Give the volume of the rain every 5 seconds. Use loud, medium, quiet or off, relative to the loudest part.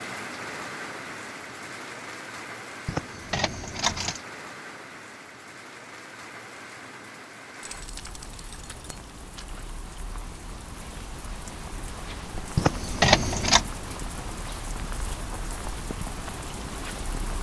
loud, medium, loud, loud.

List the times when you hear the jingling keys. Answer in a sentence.
The jingling keys can be heard from 2.9 to 4.2 s, from 7.6 to 8.8 s and from 12.6 to 13.7 s.